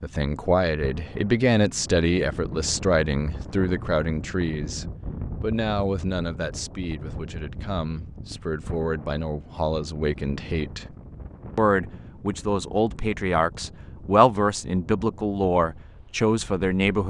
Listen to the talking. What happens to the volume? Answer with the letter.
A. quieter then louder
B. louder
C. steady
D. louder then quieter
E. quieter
A.